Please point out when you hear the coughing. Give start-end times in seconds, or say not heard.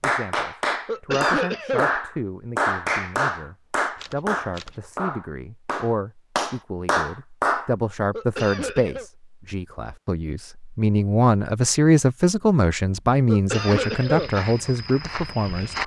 0.8-1.9, 8.1-9.1, 13.2-14.3.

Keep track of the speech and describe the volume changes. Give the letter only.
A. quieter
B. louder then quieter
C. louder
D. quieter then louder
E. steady
C.